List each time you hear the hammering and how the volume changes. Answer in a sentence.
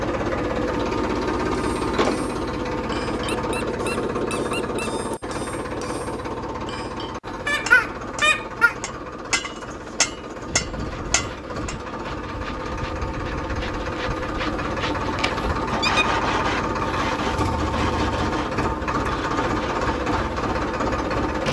You can hear the hammering from 1.5 to 11.8 s, getting louder.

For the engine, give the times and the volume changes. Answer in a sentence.
You can hear the engine from 0.0 to 21.4 s, getting quieter then louder.